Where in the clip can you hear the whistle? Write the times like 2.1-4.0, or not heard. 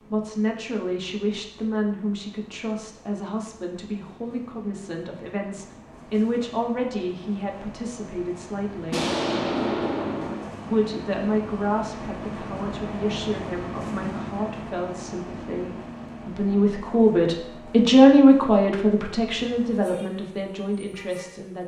not heard.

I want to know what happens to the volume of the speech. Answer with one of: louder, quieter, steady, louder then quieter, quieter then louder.
louder.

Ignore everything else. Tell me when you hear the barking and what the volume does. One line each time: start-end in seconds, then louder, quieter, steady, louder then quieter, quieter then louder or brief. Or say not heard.
not heard.